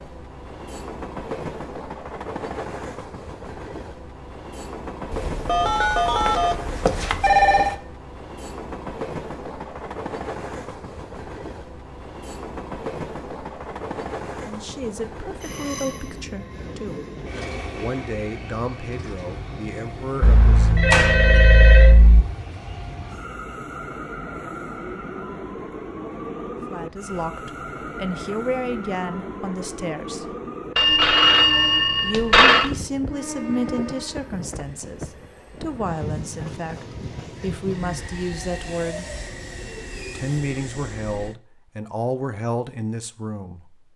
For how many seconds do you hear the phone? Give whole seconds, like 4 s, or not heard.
7 s.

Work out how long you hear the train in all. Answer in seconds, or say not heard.
41 s.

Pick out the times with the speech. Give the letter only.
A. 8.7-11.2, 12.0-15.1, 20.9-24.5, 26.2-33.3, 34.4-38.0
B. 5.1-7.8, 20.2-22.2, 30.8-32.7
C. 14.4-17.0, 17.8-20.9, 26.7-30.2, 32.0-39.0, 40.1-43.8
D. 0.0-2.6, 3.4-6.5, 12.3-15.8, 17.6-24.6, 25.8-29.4
C.